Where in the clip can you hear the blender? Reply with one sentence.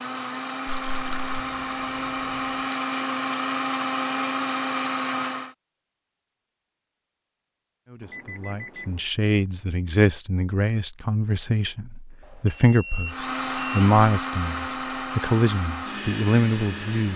The blender can be heard from 0.0 to 5.5 s and from 13.1 to 17.1 s.